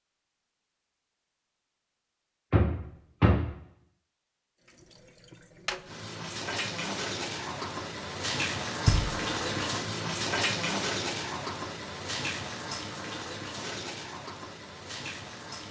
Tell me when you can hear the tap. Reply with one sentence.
You can hear the tap from 4.7 to 15.6 s.